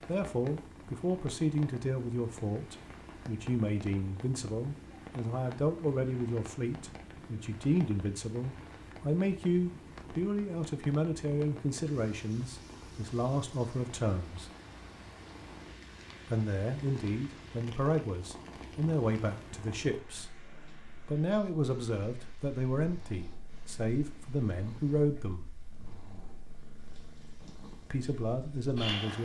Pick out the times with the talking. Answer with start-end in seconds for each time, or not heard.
0.1-14.5, 16.3-20.3, 21.1-25.5, 27.9-29.2.